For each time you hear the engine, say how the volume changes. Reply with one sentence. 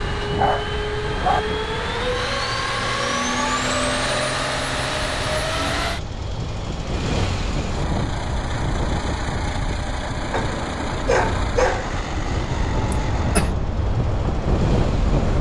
The engine can be heard from 0.0 to 15.3 s, getting quieter.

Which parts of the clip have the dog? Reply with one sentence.
You can hear the dog from 0.2 to 1.4 s and from 10.3 to 11.9 s.